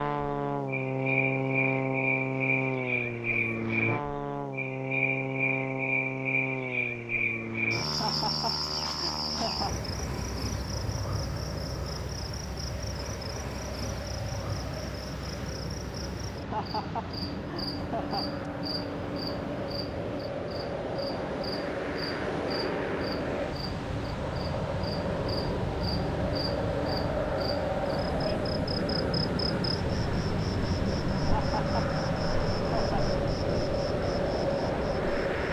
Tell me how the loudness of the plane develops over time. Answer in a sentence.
The loudness of the plane goes down, then up.